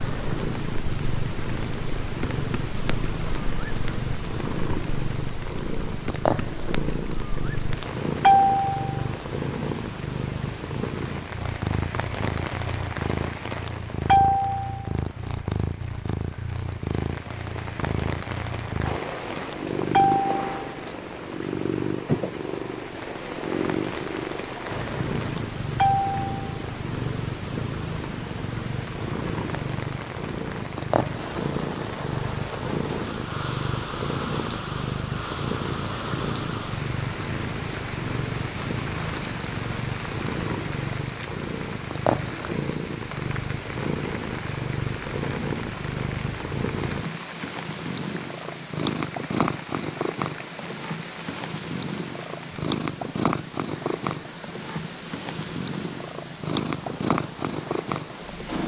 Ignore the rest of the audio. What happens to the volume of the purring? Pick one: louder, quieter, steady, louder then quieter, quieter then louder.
steady.